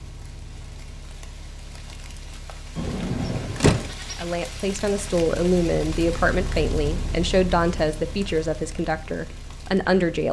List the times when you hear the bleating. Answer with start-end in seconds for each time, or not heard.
2.8-4.2.